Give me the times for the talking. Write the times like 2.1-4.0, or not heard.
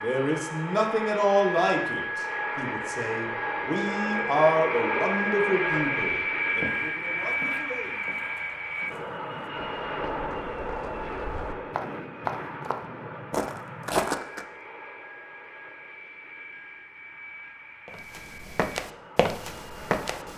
0.0-8.2.